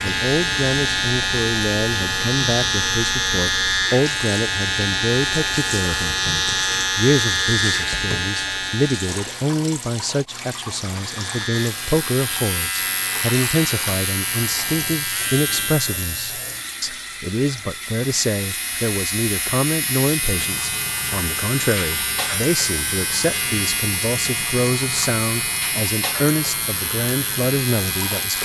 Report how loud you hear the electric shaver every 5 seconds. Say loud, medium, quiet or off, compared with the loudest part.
loud, loud, medium, medium, medium, medium.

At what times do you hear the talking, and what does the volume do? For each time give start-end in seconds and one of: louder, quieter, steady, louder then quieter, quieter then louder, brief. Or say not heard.
0.0-28.4 steady.